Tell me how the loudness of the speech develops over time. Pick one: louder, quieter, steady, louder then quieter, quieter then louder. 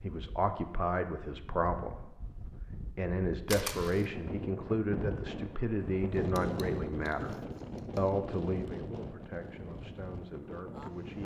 quieter.